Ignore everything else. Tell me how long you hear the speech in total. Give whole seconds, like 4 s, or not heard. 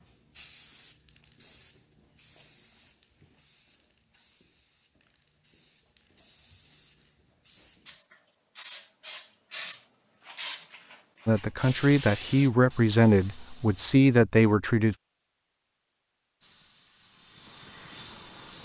4 s.